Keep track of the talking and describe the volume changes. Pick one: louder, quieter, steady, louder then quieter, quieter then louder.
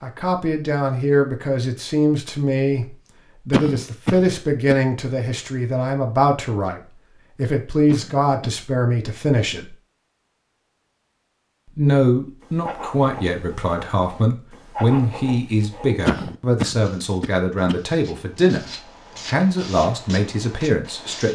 steady.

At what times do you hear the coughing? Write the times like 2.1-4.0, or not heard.
3.5-4.8, 7.8-9.6, 16.1-17.8.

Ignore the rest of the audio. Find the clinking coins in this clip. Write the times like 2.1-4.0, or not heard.
not heard.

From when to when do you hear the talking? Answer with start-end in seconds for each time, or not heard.
0.0-9.8, 11.8-21.3.